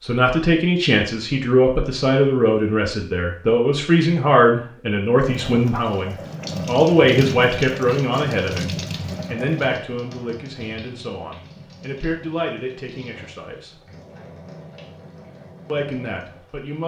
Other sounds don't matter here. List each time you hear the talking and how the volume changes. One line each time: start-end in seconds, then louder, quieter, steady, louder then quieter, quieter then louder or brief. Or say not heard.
0.0-13.8 quieter
15.7-16.8 brief.